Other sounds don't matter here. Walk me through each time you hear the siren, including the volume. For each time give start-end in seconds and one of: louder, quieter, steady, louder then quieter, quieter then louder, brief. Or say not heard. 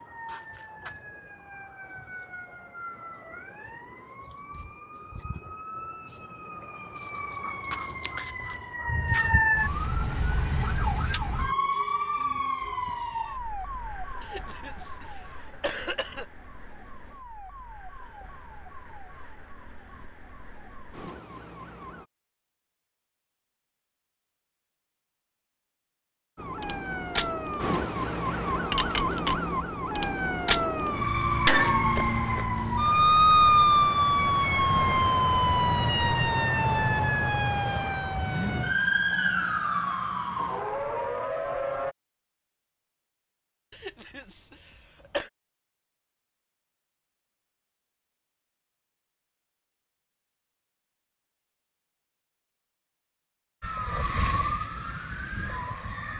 0.0-22.1 louder then quieter
26.4-42.0 louder then quieter
53.6-56.1 brief.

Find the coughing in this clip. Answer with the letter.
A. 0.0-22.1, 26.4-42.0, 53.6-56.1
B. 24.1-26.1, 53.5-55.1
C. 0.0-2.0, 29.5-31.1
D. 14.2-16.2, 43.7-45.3
D.